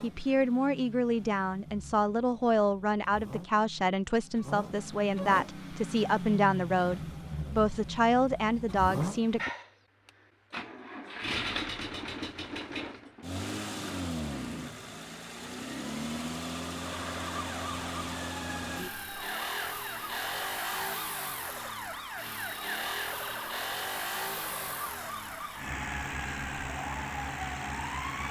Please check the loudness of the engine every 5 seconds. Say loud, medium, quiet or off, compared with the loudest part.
medium, loud, loud, loud, loud, loud.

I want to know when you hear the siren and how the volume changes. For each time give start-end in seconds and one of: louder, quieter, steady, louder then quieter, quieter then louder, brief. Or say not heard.
16.8-28.2 steady.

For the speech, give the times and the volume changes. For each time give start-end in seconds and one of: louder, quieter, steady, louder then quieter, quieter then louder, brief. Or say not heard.
0.0-9.4 steady.